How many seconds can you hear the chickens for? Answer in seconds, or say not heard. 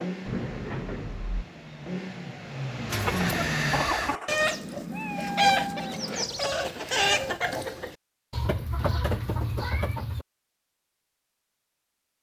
7 s.